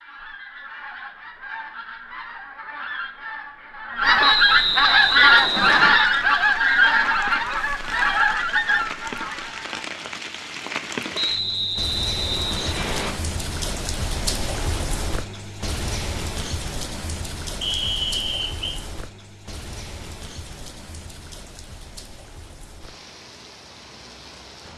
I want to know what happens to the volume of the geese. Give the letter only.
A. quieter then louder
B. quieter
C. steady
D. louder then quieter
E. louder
D.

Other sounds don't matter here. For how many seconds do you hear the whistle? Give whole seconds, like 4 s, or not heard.
5 s.